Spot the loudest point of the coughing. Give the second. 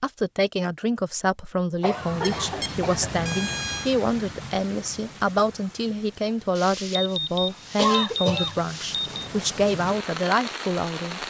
8 s.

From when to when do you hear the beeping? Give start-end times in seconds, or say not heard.
2.2-3.9, 6.5-9.2.